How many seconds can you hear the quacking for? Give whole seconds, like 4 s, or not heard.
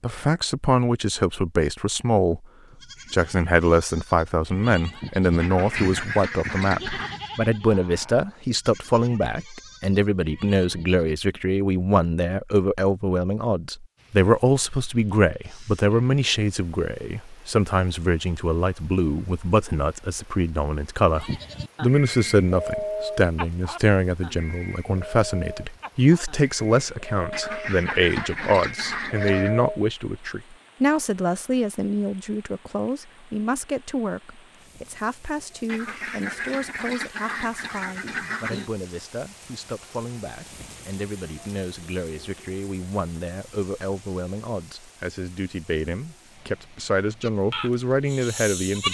7 s.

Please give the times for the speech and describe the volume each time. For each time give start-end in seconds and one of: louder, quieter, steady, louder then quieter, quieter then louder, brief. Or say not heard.
0.0-2.5 brief
3.1-48.8 quieter.